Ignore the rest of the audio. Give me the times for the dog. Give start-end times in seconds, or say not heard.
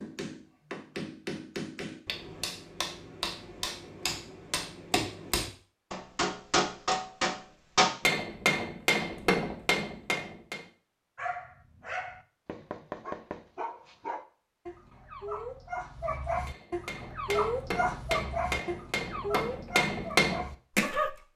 11.2-21.1.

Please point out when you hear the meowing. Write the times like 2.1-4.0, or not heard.
not heard.